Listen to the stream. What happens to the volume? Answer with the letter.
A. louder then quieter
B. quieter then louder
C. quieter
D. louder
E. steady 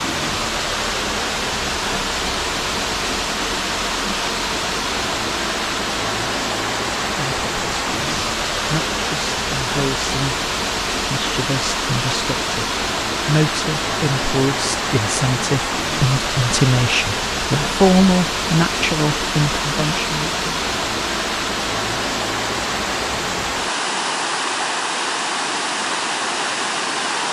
E.